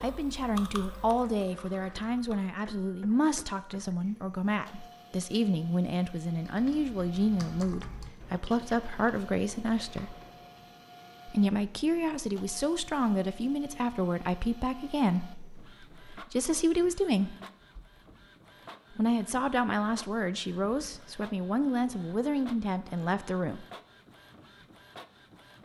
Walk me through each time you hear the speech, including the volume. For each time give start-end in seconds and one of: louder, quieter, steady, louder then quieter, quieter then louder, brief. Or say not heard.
0.0-10.2 steady
11.2-17.4 steady
18.9-23.6 steady.